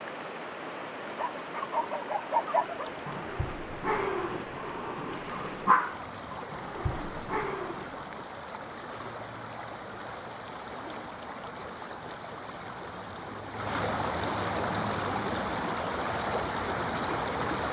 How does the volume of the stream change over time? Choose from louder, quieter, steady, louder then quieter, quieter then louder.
louder.